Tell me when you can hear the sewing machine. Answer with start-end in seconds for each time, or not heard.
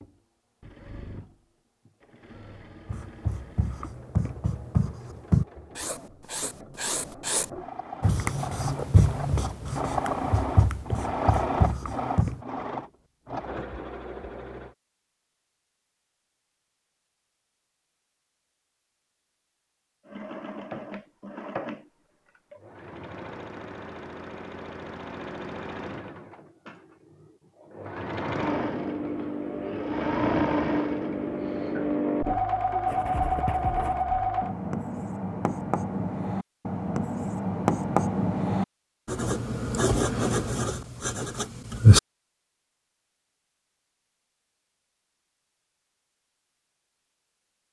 0.0-14.8, 20.1-34.5.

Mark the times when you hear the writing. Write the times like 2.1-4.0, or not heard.
2.9-12.4, 32.9-42.0.